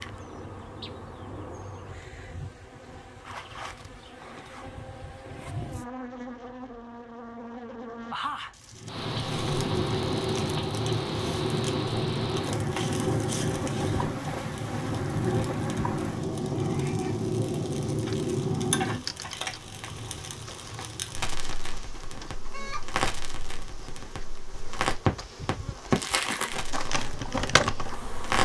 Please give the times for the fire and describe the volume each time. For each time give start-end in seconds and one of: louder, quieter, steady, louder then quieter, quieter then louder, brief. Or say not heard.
8.7-28.4 quieter then louder.